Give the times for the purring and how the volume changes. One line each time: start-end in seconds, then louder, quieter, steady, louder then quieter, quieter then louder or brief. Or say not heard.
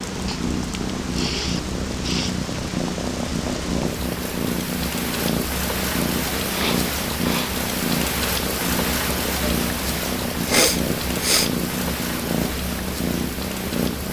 0.0-14.0 steady.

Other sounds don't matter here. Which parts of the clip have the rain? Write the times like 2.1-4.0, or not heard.
0.0-14.0.